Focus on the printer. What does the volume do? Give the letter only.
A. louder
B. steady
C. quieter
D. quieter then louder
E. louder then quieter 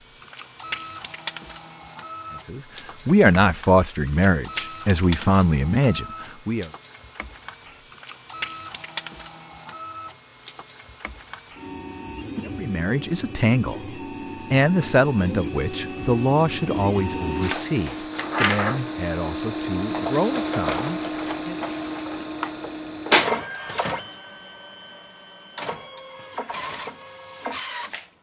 A.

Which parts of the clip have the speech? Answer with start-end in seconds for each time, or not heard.
2.5-6.7, 12.4-21.6.